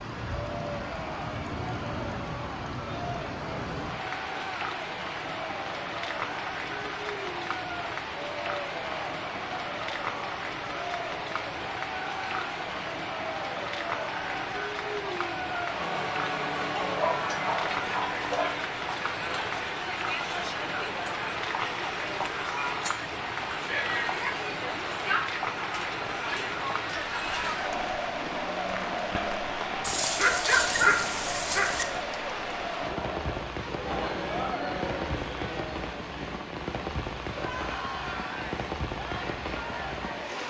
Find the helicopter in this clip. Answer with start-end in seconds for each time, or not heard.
not heard.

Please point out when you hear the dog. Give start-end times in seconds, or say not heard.
16.7-18.6, 29.8-31.9.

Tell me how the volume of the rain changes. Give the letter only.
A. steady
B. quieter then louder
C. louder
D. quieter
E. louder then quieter
A.